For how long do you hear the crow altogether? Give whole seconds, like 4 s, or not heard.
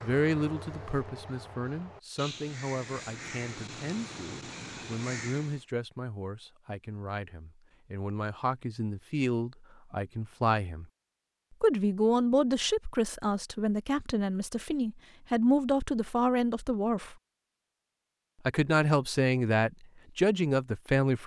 6 s.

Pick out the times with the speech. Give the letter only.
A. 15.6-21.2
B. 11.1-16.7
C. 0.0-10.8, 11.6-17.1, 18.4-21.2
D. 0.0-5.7
C.